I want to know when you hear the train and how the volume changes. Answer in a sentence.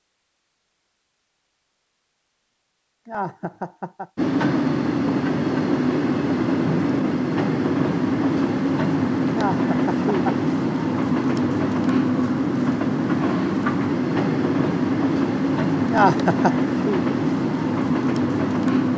The train can be heard from 4.2 to 18.9 s, at a steady volume.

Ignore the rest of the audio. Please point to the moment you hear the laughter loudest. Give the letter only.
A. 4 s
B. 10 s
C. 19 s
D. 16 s
D.